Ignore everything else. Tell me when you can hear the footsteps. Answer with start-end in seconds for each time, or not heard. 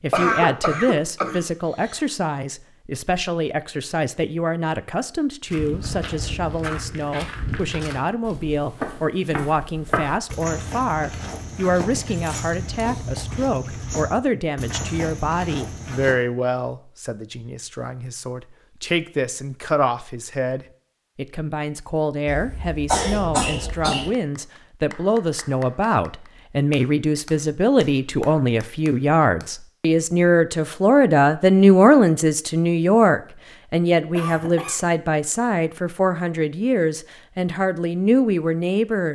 5.5-16.1.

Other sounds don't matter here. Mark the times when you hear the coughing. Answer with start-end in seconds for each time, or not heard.
0.1-2.0, 22.2-24.1, 34.1-34.8.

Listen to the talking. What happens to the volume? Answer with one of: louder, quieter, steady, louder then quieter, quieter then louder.
louder.